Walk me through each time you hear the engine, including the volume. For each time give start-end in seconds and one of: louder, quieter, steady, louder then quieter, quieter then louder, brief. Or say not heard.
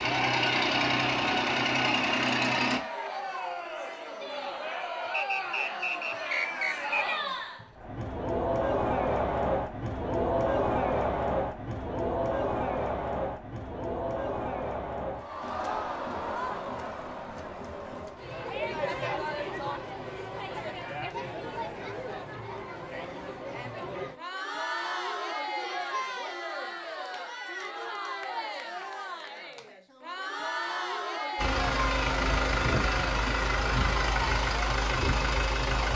0.0-2.8 brief
31.4-35.9 steady.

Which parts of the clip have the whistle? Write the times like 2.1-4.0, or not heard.
5.1-7.2.